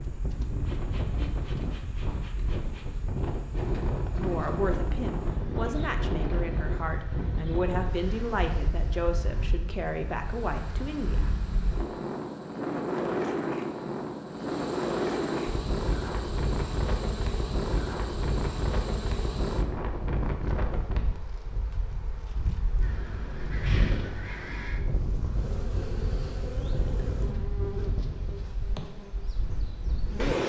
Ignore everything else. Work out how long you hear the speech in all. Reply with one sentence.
You can hear the speech for 7 seconds altogether.